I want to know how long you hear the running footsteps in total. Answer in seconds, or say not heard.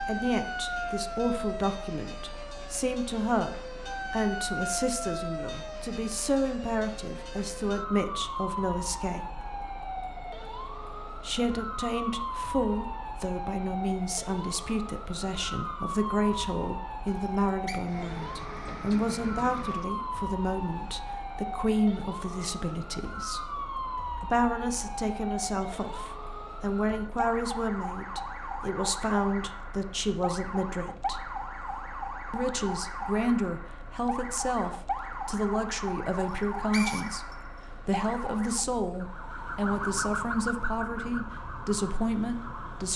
not heard.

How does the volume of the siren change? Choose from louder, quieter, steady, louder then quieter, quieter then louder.
steady.